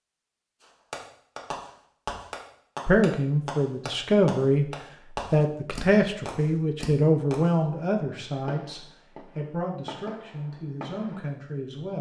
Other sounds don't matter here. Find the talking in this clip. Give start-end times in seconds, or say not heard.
2.9-4.7, 5.3-11.9.